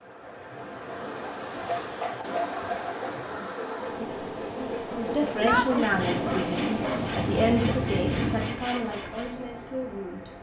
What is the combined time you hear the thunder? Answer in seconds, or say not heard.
3 s.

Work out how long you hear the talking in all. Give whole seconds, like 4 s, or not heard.
5 s.